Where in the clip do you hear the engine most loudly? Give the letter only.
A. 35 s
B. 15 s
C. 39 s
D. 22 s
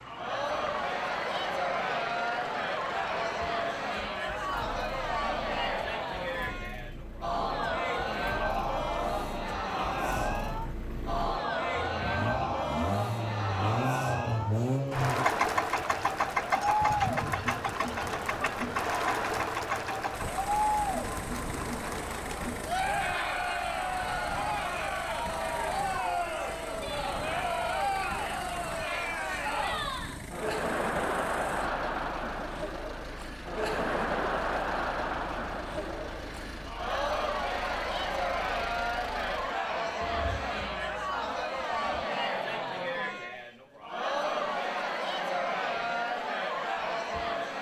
B.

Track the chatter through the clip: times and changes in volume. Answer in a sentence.
You can hear the chatter from 0.0 to 47.5 s, at a steady volume.